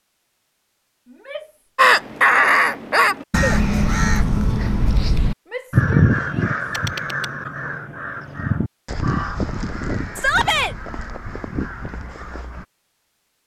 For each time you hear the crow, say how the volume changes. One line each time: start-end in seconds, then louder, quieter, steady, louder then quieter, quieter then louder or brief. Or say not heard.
1.8-12.7 quieter.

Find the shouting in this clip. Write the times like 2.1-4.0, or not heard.
1.1-1.6, 5.5-6.6, 10.2-10.8.